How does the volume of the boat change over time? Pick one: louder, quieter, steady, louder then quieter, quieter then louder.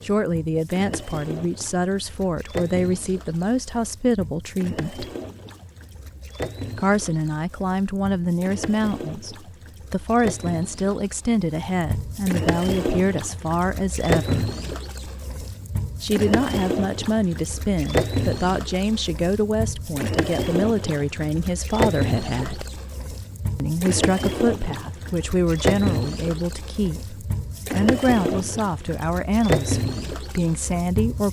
louder.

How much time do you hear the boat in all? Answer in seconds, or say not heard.
31 s.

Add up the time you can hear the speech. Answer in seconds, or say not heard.
27 s.